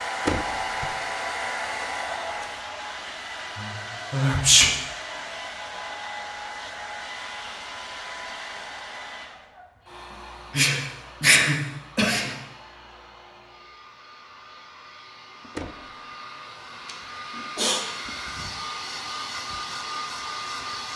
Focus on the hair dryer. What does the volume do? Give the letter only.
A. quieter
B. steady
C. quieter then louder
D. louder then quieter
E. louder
C.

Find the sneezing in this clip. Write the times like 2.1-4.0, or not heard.
3.5-4.7, 10.5-12.3, 16.9-17.9.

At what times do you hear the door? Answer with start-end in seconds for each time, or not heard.
0.2-0.9, 15.6-16.1.